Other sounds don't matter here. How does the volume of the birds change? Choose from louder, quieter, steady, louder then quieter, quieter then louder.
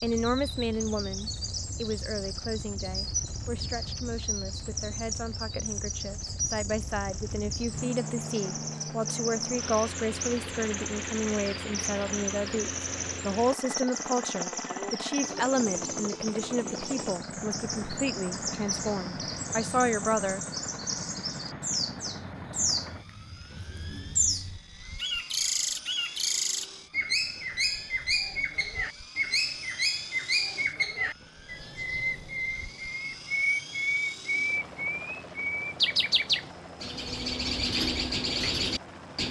louder.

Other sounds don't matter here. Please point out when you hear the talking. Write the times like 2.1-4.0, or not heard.
0.0-20.4.